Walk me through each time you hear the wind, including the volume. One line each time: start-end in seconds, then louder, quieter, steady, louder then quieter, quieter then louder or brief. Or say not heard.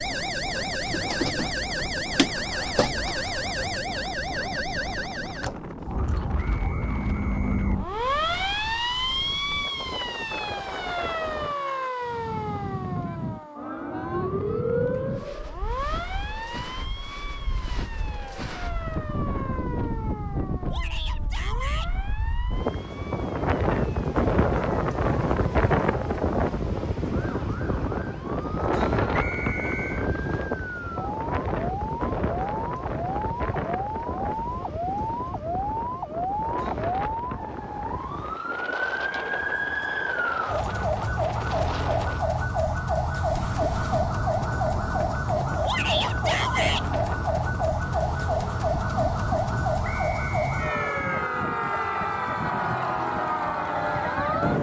0.0-54.5 louder then quieter.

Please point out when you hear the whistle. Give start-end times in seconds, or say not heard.
6.5-7.8, 29.1-30.1, 49.8-51.3.